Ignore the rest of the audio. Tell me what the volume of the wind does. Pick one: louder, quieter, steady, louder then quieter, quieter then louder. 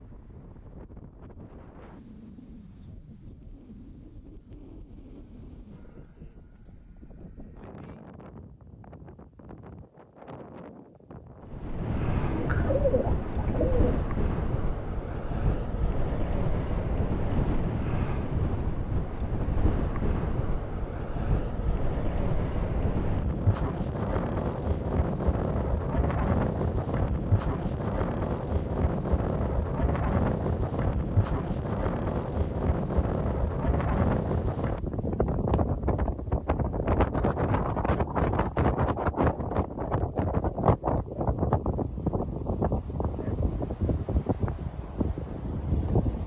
louder.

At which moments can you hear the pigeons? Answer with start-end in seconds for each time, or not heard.
12.2-14.0.